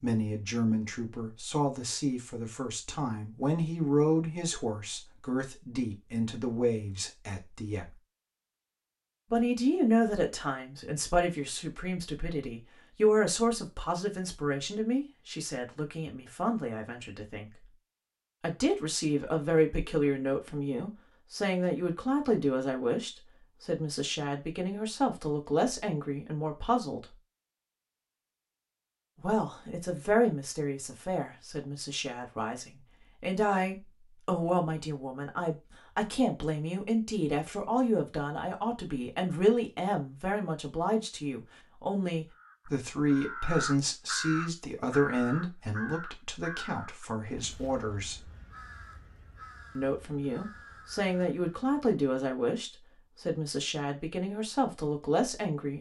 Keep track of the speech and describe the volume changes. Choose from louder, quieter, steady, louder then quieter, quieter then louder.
steady.